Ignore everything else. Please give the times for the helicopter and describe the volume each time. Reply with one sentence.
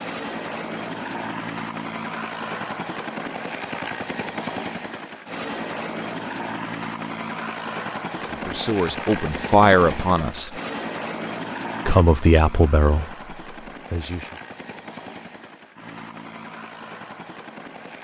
You can hear the helicopter from 0.0 to 17.9 s, getting quieter.